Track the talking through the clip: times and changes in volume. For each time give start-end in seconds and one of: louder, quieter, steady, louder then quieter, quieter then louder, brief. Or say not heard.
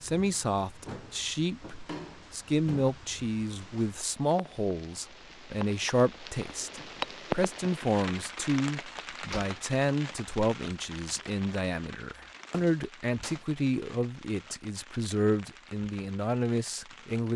0.0-17.3 steady.